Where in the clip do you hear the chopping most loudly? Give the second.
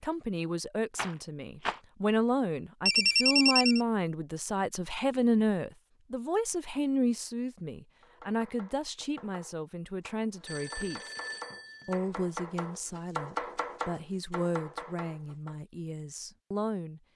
13 s.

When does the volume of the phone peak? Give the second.
3 s.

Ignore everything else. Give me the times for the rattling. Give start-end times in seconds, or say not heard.
0.9-1.8.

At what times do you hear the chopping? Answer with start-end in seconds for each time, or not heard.
8.0-15.6.